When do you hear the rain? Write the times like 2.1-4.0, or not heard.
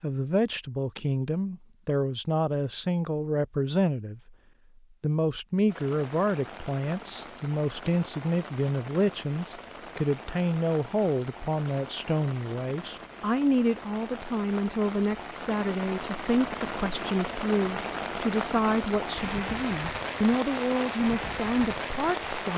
5.7-22.5.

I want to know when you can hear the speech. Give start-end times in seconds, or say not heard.
0.0-4.3, 5.0-22.5.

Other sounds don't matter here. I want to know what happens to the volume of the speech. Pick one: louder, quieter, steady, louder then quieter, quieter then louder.
steady.